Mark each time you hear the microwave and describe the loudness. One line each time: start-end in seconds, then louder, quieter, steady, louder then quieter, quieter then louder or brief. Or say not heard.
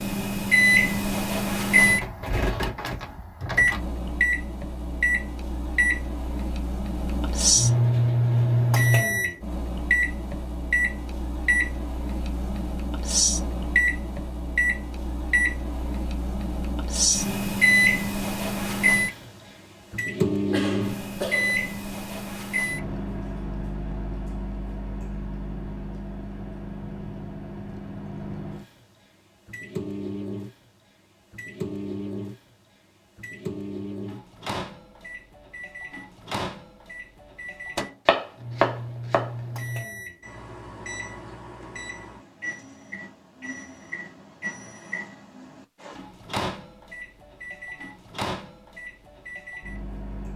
0.0-50.3 quieter.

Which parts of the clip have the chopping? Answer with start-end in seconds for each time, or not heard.
38.0-39.3.